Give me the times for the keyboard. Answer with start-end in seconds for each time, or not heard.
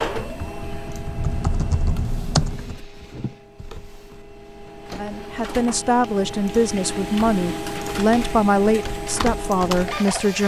0.2-2.8.